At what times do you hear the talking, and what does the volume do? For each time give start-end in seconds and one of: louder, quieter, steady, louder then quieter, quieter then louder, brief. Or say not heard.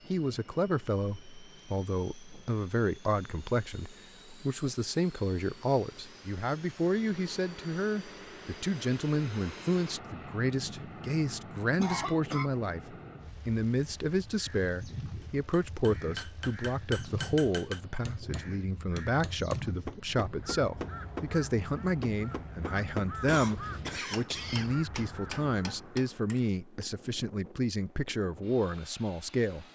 0.1-29.6 steady.